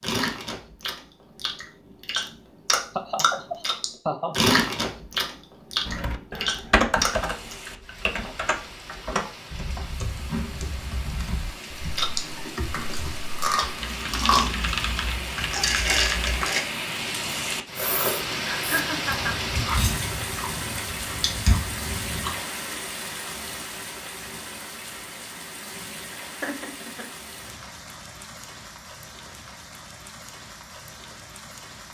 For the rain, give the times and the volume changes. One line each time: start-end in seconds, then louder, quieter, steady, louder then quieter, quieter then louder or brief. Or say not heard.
7.0-31.8 louder then quieter.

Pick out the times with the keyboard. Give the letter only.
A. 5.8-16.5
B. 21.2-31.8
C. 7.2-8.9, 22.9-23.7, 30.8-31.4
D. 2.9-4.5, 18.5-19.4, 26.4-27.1
A.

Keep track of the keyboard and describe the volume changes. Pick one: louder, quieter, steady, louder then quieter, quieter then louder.
quieter then louder.